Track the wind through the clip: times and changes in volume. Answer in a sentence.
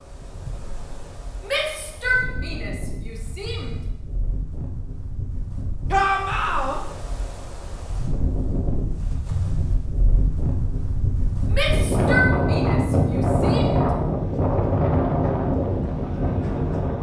You can hear the wind from 0.0 to 16.9 s, getting louder.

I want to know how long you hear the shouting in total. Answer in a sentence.
The shouting can be heard for 6 seconds in total.